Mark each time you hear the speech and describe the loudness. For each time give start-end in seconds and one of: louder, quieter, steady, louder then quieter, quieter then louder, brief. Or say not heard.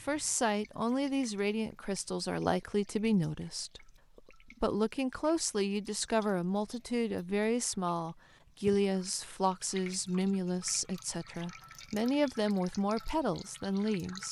0.0-14.2 steady.